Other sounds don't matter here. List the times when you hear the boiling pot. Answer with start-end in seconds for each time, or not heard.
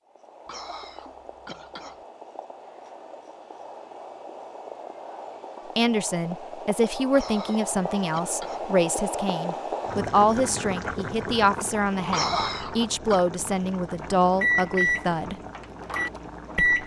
0.0-16.8.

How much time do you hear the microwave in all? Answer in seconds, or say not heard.
3 s.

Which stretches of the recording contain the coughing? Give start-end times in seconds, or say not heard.
0.5-2.0, 7.1-8.7, 12.1-13.2.